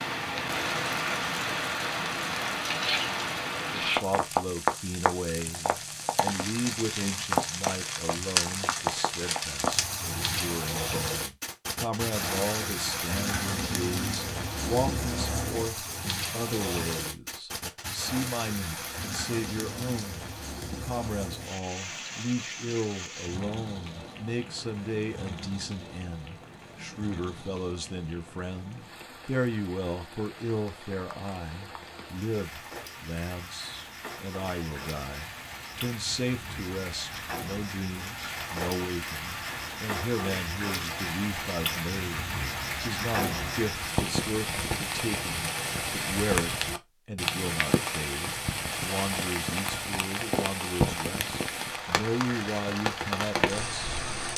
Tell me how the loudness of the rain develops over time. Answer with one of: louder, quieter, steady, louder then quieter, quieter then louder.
quieter then louder.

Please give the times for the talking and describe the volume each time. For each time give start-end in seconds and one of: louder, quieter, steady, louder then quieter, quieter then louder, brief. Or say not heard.
3.8-54.0 steady.